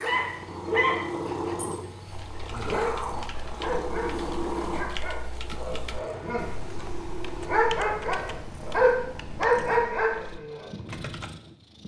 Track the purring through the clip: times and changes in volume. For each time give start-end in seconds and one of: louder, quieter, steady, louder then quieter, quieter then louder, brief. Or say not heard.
0.0-11.8 quieter.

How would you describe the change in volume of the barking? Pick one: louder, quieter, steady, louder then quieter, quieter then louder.
quieter then louder.